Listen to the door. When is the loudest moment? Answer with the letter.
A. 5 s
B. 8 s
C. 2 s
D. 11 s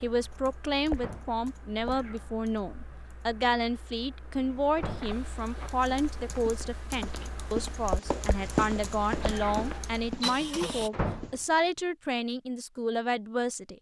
D.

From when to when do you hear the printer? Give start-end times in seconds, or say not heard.
9.2-10.9.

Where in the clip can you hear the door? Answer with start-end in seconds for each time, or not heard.
0.9-1.4, 4.8-5.2, 10.9-11.4.